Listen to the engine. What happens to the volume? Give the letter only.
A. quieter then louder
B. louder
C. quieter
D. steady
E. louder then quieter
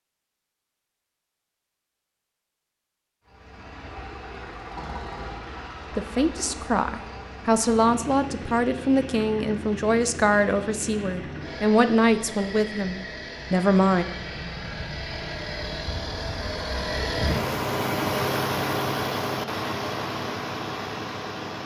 B.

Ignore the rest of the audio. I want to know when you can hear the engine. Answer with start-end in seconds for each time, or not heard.
3.2-21.6.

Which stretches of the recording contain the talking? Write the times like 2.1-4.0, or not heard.
6.0-14.1.